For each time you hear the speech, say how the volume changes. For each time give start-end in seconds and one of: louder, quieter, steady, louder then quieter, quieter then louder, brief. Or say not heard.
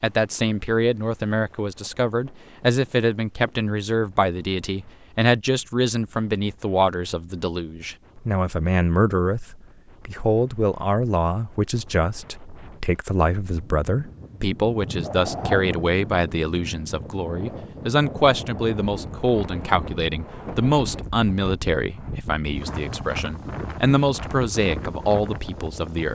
0.0-26.1 steady.